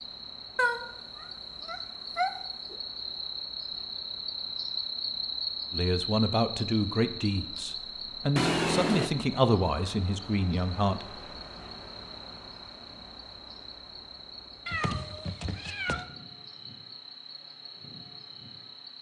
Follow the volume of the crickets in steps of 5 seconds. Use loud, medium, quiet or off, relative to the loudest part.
loud, loud, medium, medium.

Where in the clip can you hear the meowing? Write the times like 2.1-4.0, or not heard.
0.6-2.8, 8.3-9.1, 14.7-16.1.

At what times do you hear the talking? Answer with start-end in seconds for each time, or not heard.
5.7-11.2.